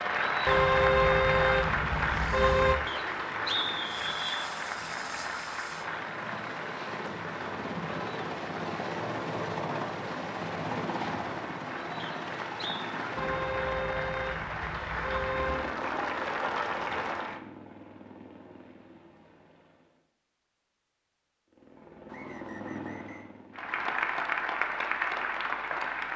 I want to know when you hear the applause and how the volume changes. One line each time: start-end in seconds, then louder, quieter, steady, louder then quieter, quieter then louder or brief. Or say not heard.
0.0-17.4 quieter then louder
23.6-26.1 brief.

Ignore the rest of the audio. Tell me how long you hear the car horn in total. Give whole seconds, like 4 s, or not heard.
5 s.